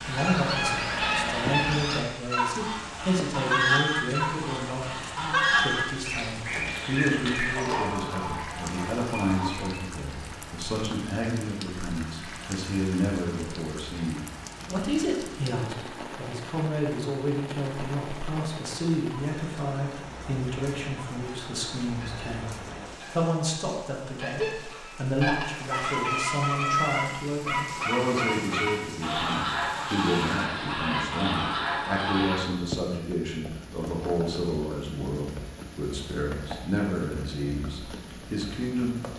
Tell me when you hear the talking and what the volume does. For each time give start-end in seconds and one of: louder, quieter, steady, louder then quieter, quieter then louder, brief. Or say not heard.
0.1-39.0 steady.